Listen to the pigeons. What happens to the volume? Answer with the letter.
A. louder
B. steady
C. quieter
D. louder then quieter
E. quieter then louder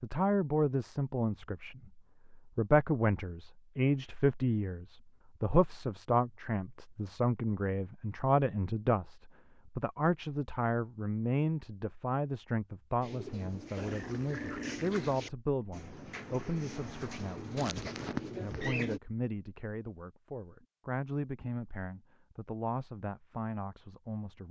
A.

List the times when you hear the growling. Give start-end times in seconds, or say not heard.
13.8-15.2.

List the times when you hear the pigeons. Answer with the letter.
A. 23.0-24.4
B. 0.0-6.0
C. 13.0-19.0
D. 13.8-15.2
C.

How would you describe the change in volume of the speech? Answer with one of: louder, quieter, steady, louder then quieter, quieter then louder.
quieter.